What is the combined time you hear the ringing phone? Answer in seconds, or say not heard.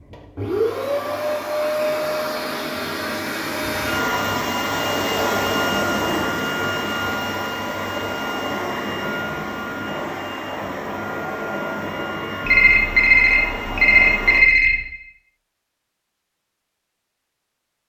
2 s.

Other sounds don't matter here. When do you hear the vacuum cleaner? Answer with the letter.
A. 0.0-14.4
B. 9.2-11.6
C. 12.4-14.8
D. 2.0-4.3
A.